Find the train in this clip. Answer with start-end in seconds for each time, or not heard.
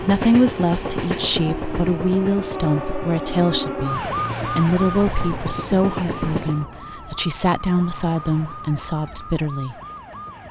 0.0-6.7.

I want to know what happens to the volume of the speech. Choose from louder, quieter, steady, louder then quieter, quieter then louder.
steady.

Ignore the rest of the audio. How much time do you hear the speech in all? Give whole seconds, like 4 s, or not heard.
10 s.